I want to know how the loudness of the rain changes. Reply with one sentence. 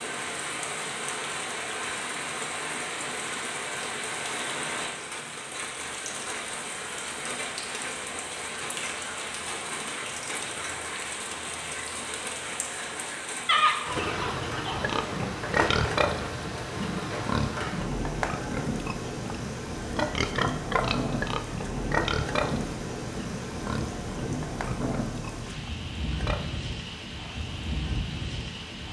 The loudness of the rain stays about the same.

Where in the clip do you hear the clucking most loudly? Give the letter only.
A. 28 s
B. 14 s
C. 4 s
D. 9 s
B.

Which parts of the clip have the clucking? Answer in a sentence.
The clucking can be heard from 13.4 to 14.9 s.